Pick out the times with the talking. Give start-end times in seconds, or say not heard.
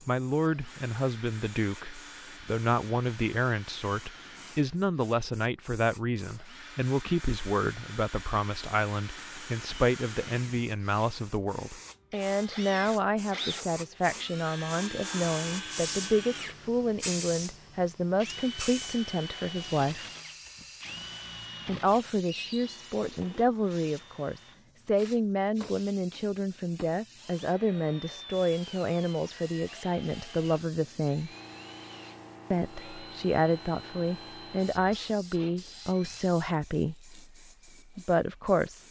0.1-20.1, 21.6-31.3, 32.5-37.1, 38.0-38.8.